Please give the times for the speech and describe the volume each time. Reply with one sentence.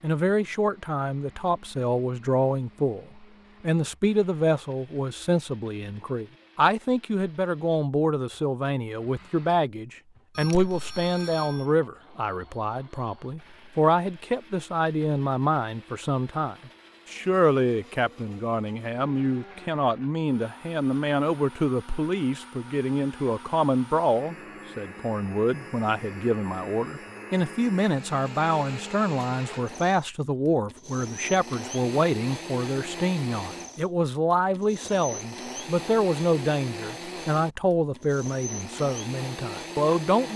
You can hear the speech from 0.0 to 40.3 s, at a steady volume.